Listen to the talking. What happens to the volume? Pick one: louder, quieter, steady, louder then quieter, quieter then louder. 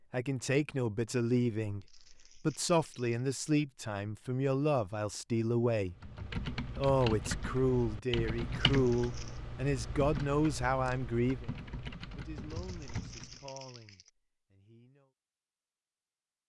quieter.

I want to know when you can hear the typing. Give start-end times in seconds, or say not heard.
5.9-13.5.